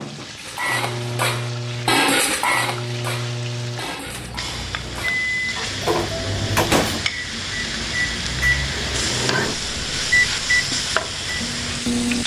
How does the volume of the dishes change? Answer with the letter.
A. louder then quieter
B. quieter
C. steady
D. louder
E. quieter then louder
E.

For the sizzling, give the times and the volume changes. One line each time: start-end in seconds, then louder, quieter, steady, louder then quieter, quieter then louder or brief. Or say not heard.
0.0-12.2 louder.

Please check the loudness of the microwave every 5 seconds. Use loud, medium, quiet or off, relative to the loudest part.
medium, loud, loud.